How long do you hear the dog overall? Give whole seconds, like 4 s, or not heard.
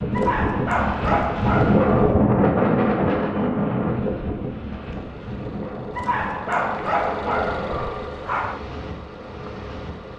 5 s.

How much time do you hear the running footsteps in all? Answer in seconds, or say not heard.
not heard.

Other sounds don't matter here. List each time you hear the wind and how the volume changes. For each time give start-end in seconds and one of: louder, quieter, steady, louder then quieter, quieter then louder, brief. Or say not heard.
0.0-10.1 quieter.